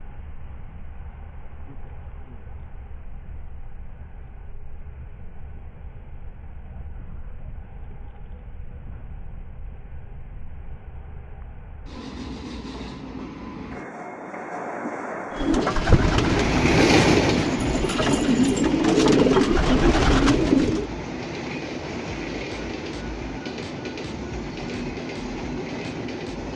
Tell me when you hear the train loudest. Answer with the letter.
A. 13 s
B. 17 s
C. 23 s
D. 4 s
B.